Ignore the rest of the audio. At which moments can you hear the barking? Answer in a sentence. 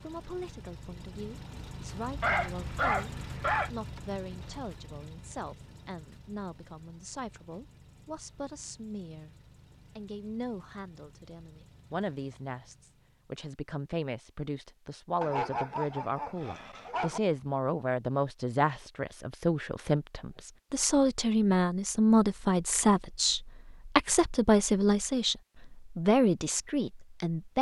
The barking can be heard from 2.2 to 3.7 s and from 15.2 to 17.2 s.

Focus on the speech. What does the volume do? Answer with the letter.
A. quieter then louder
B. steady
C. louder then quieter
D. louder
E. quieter
D.